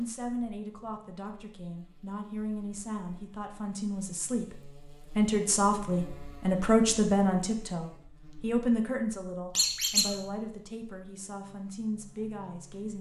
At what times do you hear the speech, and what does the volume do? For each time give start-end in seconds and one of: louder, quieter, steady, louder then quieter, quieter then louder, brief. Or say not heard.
0.0-12.9 louder then quieter.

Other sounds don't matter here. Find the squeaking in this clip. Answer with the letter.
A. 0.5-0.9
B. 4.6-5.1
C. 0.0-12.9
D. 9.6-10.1
D.